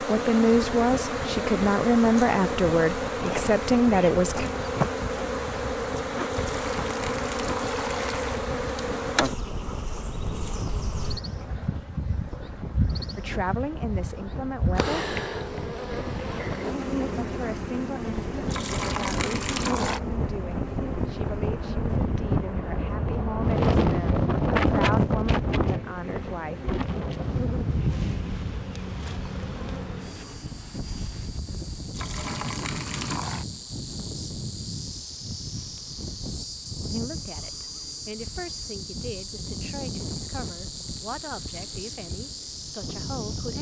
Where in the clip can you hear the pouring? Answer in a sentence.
The pouring can be heard from 6.3 to 8.4 s, from 18.5 to 20.0 s and from 31.9 to 33.5 s.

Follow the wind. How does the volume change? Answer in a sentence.
The volume of the wind goes up, then down.